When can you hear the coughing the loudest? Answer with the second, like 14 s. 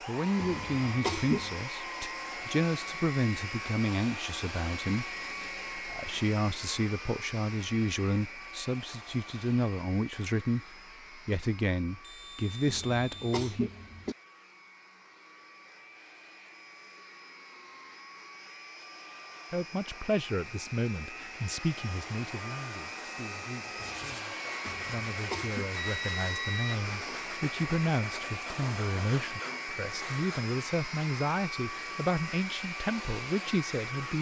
1 s.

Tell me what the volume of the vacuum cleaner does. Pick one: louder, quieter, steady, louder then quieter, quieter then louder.
quieter then louder.